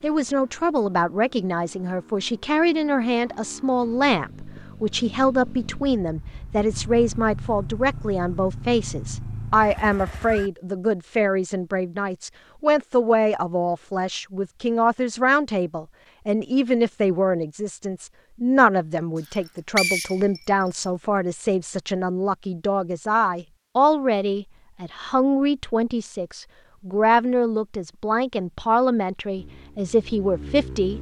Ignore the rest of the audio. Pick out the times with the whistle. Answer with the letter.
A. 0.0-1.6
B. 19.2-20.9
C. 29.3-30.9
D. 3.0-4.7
B.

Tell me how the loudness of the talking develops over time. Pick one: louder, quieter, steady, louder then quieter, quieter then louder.
steady.